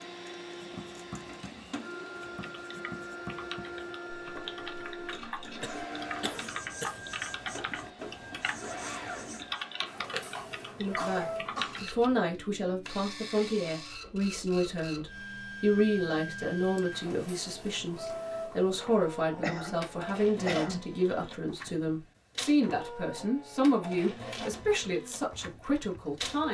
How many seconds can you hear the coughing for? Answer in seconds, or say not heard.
4 s.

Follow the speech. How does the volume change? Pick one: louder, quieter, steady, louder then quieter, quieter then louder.
steady.